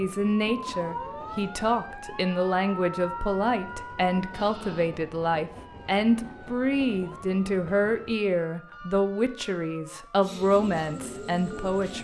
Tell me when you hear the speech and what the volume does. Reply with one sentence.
The speech can be heard from 0.0 to 11.9 s, at a steady volume.